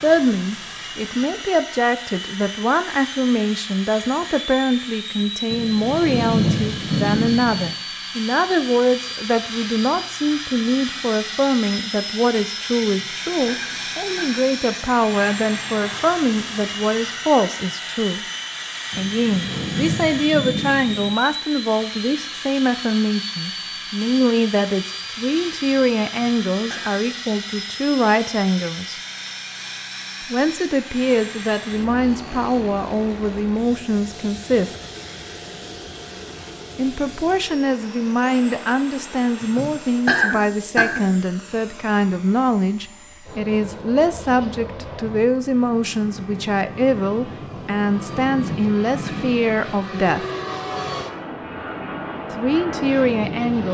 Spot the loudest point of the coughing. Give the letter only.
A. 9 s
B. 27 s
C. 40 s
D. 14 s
C.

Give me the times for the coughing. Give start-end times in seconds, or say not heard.
12.8-14.4, 26.1-27.0, 39.4-41.0.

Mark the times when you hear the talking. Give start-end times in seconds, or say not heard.
0.0-18.2, 18.9-29.0, 30.2-34.7, 36.8-50.2, 52.3-53.6.